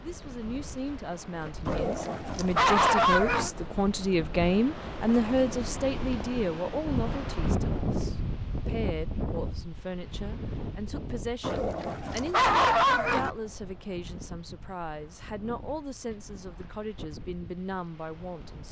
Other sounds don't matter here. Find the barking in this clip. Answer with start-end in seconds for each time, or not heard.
1.6-3.5, 11.4-13.3.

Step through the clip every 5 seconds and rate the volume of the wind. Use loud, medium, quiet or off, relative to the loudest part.
medium, loud, medium, quiet.